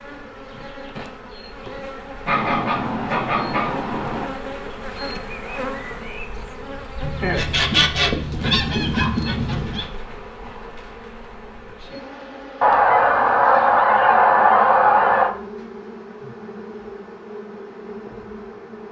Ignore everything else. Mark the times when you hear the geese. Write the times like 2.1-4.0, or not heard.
2.2-4.2, 7.0-9.8, 12.6-15.3.